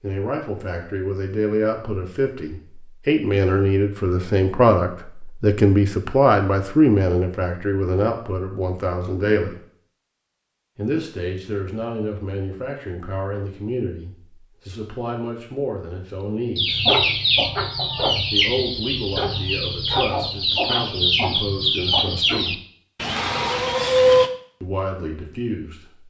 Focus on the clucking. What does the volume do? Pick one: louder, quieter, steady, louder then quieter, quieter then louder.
steady.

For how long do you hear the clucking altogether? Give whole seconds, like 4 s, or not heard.
8 s.